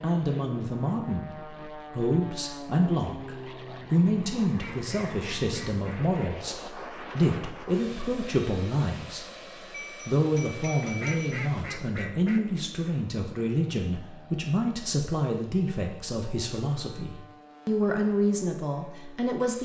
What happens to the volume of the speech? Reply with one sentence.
The loudness of the speech stays about the same.